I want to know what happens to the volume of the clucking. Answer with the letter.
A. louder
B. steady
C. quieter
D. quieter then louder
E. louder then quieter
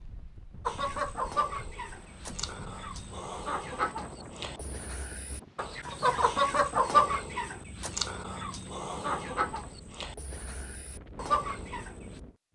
E.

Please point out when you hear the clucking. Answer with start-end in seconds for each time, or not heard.
0.7-12.2.